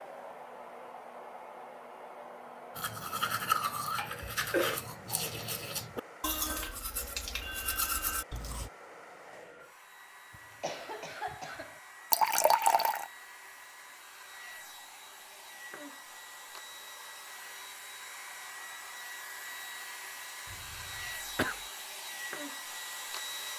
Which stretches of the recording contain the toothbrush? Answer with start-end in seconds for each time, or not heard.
2.8-8.7.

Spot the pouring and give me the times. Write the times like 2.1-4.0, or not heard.
12.1-13.1.